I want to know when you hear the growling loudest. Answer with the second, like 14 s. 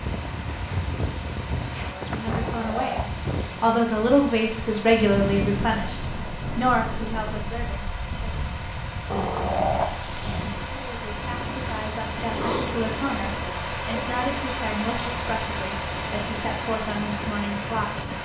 10 s.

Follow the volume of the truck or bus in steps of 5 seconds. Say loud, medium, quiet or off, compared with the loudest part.
medium, medium, loud, loud.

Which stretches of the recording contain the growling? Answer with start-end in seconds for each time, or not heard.
2.2-3.9, 9.1-10.6, 12.2-14.4.